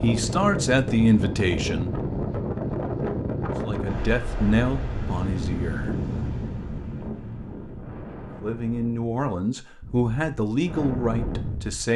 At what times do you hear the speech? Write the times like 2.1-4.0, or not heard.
0.0-1.9, 3.6-6.0, 8.3-11.9.